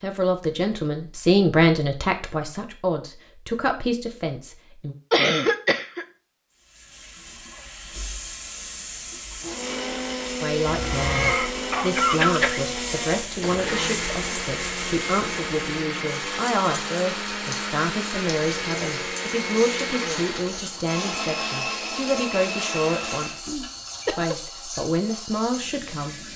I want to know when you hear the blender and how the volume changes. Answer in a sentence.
You can hear the blender from 9.4 to 23.4 s, at a steady volume.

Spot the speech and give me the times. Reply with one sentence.
The speech can be heard from 0.0 to 5.0 s and from 10.4 to 26.2 s.